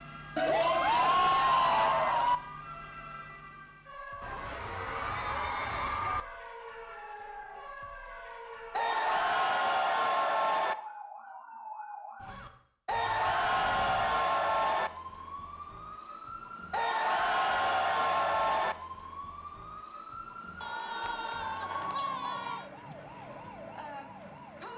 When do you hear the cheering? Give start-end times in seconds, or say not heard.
0.3-2.4, 4.2-6.2, 8.8-10.8, 12.8-14.9, 16.7-18.8, 20.6-22.6.